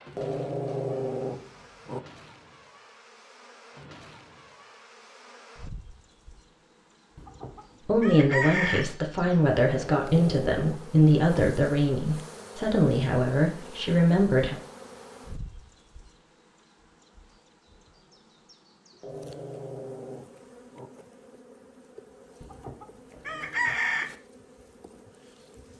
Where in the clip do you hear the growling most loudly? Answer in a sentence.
The loudest moment of the growling is at 1 second.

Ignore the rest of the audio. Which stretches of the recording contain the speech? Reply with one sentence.
You can hear the speech from 7.8 to 14.6 s.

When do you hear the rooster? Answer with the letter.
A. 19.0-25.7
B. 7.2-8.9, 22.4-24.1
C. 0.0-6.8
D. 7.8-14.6
B.